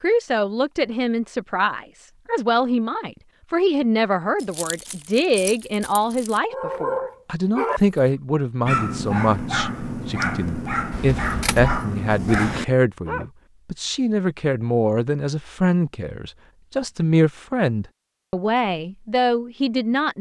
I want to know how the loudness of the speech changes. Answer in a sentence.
The volume of the speech stays about the same.